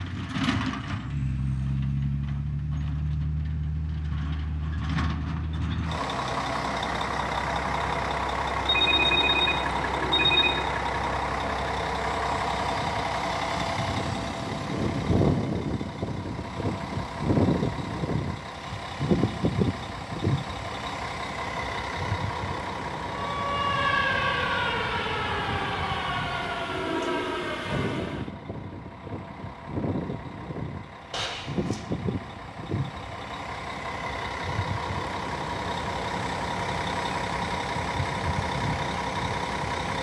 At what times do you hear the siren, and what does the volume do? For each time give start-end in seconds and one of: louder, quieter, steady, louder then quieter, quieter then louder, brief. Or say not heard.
23.1-28.2 quieter.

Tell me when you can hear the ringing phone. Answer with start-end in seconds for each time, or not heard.
8.7-10.6, 31.1-31.8.